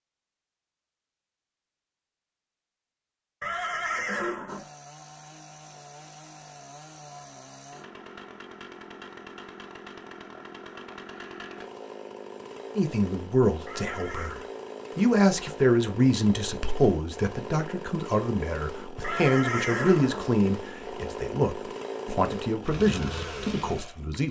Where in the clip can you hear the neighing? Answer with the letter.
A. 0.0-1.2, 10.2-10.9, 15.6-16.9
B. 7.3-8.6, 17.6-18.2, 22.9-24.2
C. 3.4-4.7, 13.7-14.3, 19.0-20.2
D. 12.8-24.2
C.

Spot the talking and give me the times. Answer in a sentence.
You can hear the talking from 12.8 to 24.2 s.